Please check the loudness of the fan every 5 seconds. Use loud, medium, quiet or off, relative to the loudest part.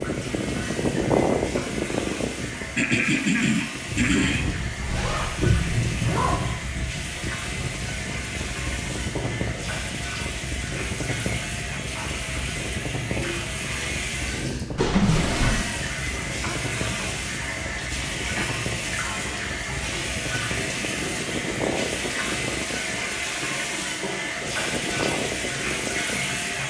loud, medium, medium, medium, medium, medium.